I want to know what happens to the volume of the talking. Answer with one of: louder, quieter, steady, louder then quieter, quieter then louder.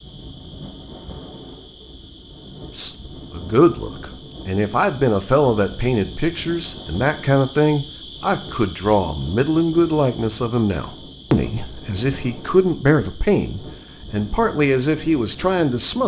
steady.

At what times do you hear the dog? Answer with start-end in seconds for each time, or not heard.
not heard.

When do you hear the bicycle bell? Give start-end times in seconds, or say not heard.
not heard.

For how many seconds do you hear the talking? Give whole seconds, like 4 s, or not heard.
13 s.